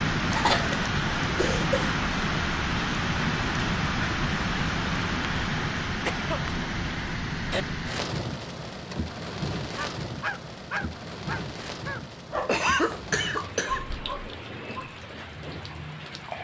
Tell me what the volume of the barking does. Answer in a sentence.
The loudness of the barking goes down, then up.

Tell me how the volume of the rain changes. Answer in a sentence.
The loudness of the rain goes down.